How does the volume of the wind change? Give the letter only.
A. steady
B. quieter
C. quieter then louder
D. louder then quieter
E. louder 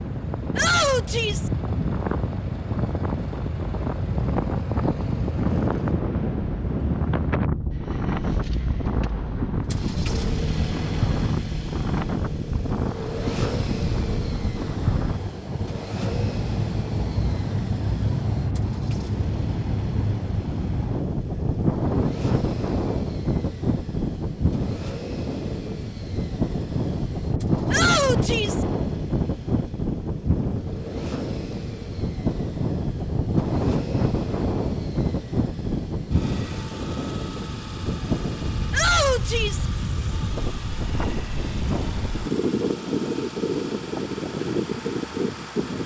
A.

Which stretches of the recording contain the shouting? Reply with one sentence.
You can hear the shouting from 0.6 to 1.5 s, from 27.7 to 28.6 s and from 38.7 to 39.6 s.